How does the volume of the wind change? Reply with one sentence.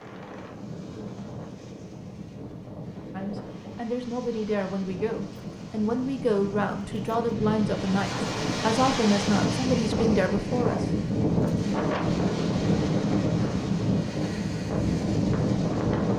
The loudness of the wind goes up.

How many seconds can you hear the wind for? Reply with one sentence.
You can hear the wind for 16 seconds altogether.